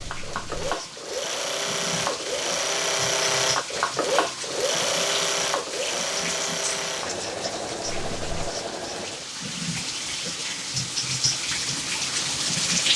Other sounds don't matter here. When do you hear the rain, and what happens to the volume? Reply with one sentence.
The rain can be heard from 0.0 to 12.9 s, getting louder.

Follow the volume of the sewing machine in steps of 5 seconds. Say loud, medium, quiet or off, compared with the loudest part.
loud, loud, off.